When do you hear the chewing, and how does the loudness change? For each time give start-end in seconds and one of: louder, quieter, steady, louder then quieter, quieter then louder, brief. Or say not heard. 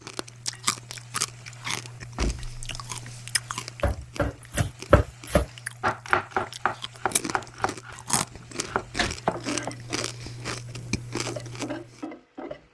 0.0-12.0 quieter then louder.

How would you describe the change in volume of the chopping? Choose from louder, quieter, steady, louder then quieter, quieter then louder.
quieter then louder.